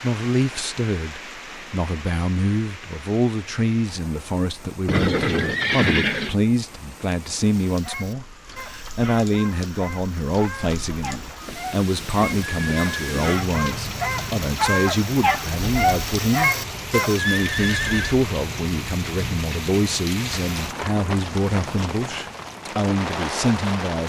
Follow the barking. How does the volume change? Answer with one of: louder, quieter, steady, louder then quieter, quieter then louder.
louder.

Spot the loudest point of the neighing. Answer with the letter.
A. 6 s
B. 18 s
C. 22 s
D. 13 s
A.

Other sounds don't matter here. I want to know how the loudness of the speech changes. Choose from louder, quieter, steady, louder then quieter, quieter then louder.
steady.